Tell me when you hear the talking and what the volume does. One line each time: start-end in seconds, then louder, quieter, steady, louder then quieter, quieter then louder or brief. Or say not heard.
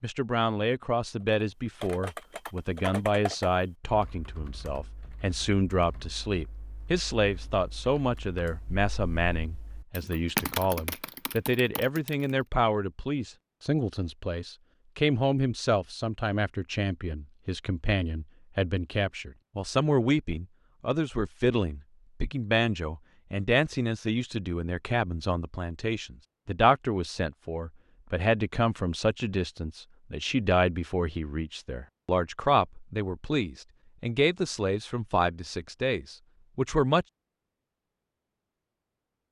0.0-37.0 steady.